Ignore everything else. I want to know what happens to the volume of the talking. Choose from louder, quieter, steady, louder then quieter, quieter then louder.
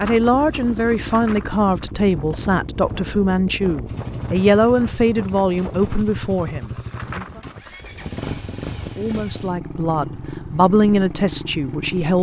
quieter then louder.